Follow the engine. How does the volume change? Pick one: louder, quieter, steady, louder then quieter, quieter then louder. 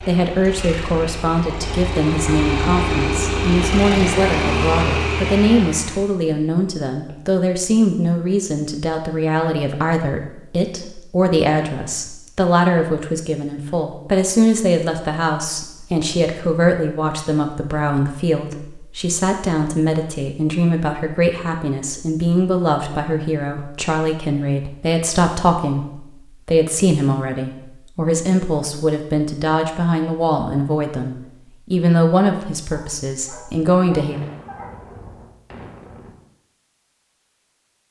louder.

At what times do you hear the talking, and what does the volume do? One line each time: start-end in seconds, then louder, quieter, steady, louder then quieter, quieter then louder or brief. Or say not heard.
0.0-34.2 steady.